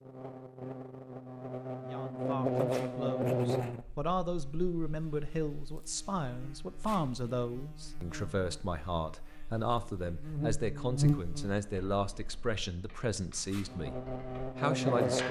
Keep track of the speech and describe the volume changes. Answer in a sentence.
The volume of the speech stays about the same.